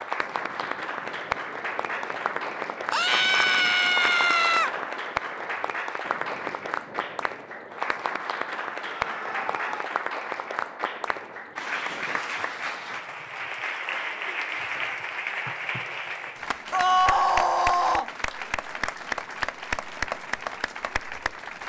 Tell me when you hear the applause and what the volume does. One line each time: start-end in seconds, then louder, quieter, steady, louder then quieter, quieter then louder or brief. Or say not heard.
0.0-21.6 steady.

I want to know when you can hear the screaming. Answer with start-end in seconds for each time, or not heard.
2.9-4.7, 8.8-9.8, 16.7-18.1.